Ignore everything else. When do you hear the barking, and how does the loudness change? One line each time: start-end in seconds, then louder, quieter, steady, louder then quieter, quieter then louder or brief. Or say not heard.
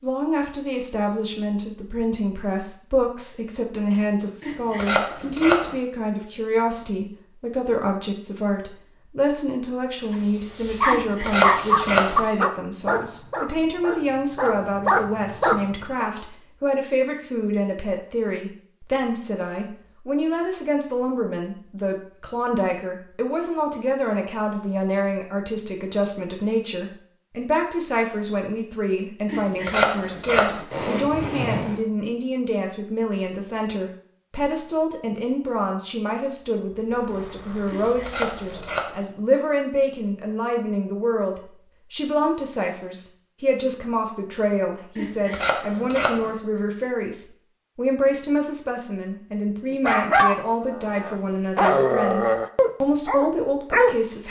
10.1-16.1 quieter then louder
49.7-54.0 quieter then louder.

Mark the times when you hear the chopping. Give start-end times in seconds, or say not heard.
4.4-5.8, 10.8-12.2, 29.2-30.6, 37.6-39.0, 45.0-46.3.